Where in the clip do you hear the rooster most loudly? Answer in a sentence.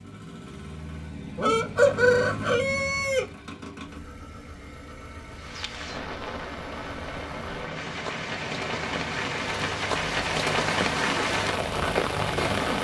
The loudest moment of the rooster is at 2 seconds.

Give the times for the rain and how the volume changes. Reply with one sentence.
The rain can be heard from 5.3 to 12.7 s, getting louder.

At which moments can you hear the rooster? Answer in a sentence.
The rooster can be heard from 1.4 to 3.2 s.